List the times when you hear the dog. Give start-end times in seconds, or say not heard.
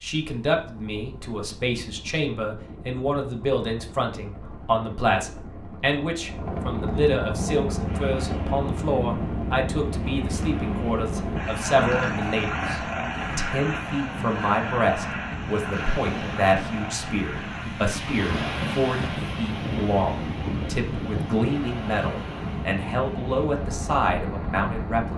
not heard.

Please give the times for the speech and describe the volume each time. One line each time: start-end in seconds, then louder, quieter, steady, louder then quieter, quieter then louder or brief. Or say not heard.
0.0-25.1 steady.